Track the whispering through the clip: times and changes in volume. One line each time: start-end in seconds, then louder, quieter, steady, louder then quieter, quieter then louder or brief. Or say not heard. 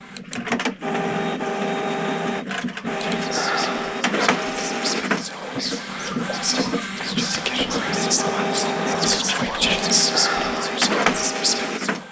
3.1-12.0 louder.